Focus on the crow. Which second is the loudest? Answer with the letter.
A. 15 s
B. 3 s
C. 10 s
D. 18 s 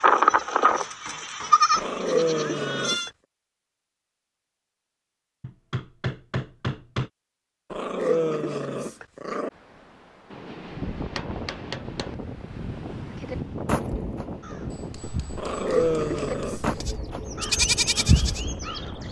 D.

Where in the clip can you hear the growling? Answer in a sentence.
You can hear the growling from 1.8 to 3.1 s, from 7.7 to 9.5 s and from 15.3 to 16.7 s.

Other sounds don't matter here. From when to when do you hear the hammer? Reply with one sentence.
You can hear the hammer from 0.3 to 1.9 s, from 5.4 to 7.1 s, from 10.3 to 12.2 s and from 14.7 to 16.9 s.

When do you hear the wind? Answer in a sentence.
The wind can be heard from 9.5 to 19.0 s.